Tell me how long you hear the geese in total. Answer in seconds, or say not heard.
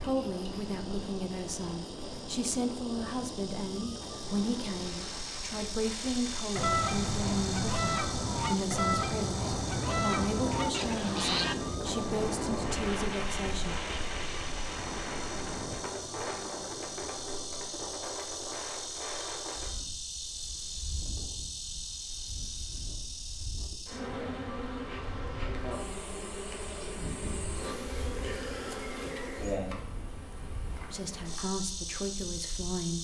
5 s.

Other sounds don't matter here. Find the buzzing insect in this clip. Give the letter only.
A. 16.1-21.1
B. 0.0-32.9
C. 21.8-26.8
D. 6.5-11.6
B.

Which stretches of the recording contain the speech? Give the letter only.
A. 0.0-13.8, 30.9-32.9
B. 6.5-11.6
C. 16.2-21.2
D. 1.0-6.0
A.